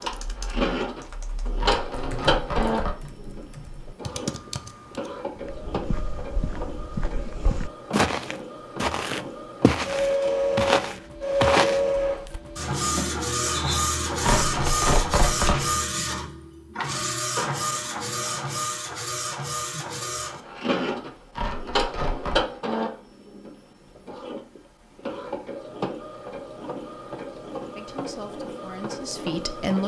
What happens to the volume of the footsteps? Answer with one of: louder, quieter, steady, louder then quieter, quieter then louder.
louder.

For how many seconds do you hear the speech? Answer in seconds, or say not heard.
2 s.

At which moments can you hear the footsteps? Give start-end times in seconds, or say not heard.
5.3-12.4.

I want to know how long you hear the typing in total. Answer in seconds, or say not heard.
5 s.